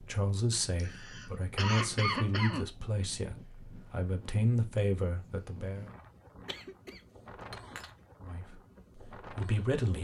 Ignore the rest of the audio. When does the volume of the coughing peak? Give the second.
2 s.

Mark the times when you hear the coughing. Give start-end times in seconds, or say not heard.
0.5-2.7, 6.5-7.9.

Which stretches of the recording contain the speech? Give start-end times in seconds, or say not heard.
0.0-5.9, 8.2-9.9.